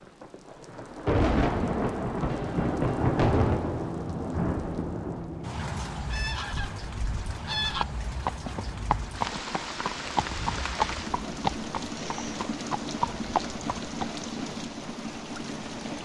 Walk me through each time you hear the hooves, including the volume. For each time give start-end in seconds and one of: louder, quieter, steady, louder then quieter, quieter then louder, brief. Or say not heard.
7.7-14.1 steady.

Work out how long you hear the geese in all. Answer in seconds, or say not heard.
2 s.